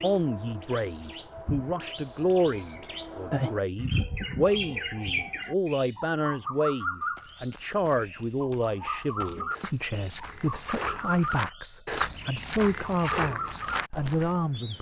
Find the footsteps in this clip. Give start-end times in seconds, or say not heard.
7.0-14.4.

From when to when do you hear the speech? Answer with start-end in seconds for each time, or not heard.
0.0-14.7.